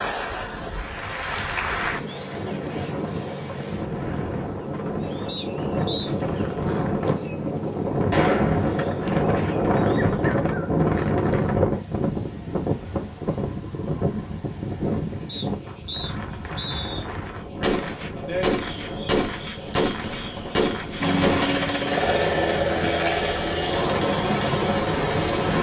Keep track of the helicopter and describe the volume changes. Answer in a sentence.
The loudness of the helicopter stays about the same.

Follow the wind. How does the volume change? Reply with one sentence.
The loudness of the wind goes up, then down.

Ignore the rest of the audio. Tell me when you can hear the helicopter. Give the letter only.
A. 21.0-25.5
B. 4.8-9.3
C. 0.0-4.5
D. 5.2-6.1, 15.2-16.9
A.